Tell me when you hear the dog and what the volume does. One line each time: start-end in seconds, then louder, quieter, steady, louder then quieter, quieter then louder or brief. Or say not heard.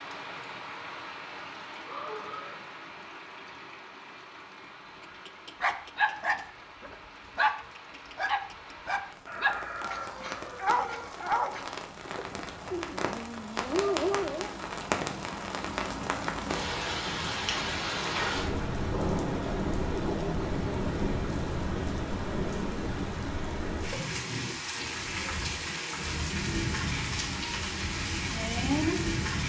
5.0-14.6 steady.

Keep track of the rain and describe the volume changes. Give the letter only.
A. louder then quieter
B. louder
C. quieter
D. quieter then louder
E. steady
B.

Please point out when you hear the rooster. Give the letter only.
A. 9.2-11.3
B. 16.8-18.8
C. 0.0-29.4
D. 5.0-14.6
A.